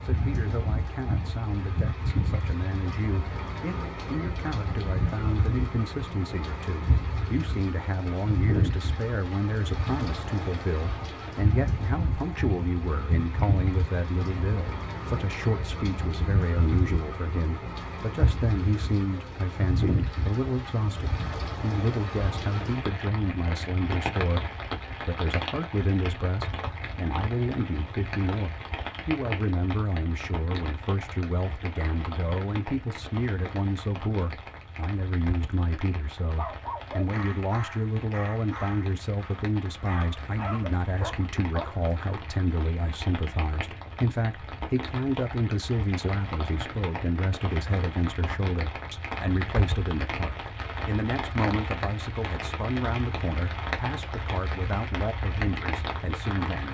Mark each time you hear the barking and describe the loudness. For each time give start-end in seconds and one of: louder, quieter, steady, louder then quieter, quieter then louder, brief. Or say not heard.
36.4-42.0 quieter then louder.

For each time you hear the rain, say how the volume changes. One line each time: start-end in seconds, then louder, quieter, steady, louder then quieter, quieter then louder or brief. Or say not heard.
0.0-56.6 quieter then louder.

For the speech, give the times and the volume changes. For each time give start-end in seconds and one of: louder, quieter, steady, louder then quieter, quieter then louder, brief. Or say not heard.
0.0-56.6 steady.